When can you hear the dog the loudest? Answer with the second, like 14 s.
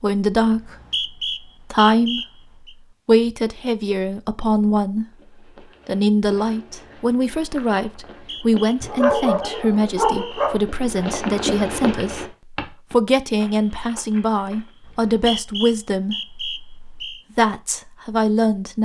9 s.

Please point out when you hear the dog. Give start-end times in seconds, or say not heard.
8.8-10.6.